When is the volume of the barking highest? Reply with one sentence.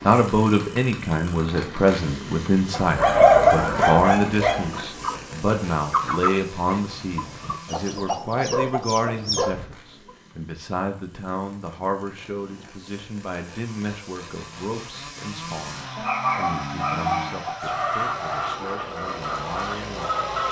The volume of the barking peaks at 3 seconds.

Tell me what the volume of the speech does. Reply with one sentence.
The volume of the speech goes down.